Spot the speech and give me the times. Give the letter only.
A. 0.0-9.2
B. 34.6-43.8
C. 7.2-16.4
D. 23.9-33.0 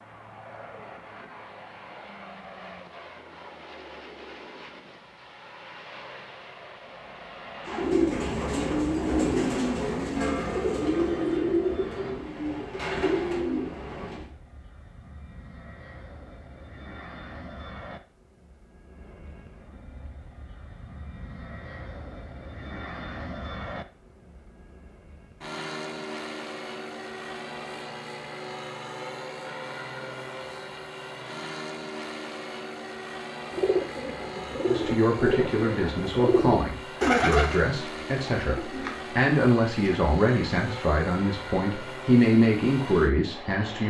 B.